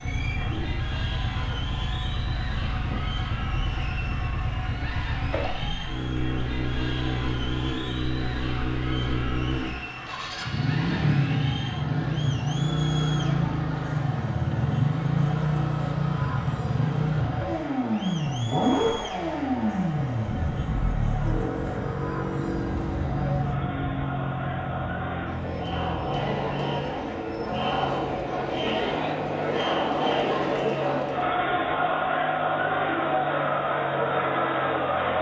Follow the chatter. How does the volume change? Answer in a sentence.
The loudness of the chatter goes up.